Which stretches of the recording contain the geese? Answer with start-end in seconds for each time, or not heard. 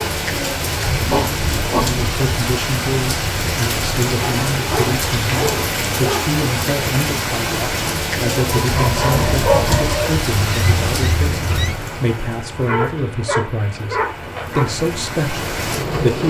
9.1-11.8.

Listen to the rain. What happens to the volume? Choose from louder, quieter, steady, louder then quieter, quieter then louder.
quieter.